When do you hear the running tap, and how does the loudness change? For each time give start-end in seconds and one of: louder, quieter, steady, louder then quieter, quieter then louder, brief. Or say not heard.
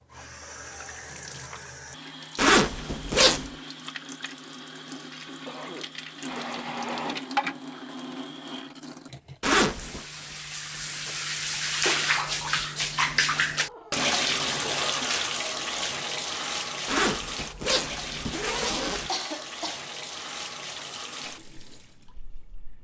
0.0-22.7 louder then quieter.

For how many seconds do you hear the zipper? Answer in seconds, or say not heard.
4 s.